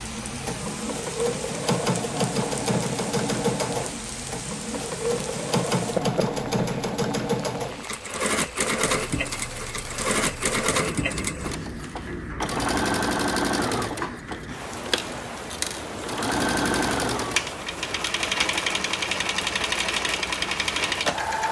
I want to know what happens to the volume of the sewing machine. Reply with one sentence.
The loudness of the sewing machine stays about the same.